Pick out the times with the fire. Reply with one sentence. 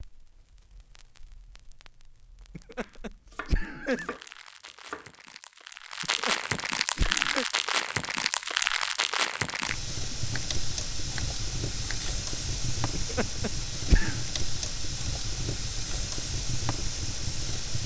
You can hear the fire from 0.0 to 17.8 s.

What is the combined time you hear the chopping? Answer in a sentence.
You can hear the chopping for 4 seconds altogether.